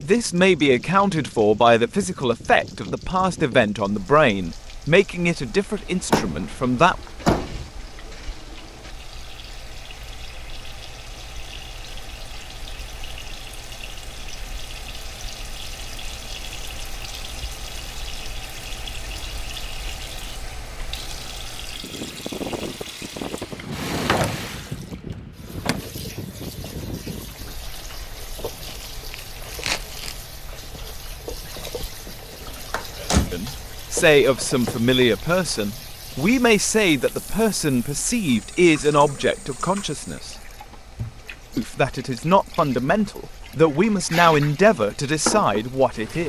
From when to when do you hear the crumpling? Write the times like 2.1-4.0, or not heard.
28.6-30.2.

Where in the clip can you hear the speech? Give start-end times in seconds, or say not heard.
0.0-7.0, 33.3-40.4, 41.5-46.2.